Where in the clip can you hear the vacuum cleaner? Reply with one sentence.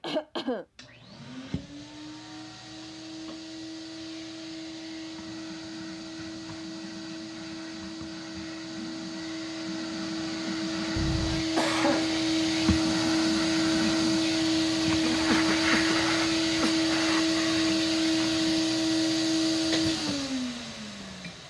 The vacuum cleaner can be heard from 0.8 to 21.4 s.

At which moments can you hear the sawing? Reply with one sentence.
You can't hear the sawing here.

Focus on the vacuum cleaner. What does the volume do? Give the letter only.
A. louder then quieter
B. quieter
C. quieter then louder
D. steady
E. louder
E.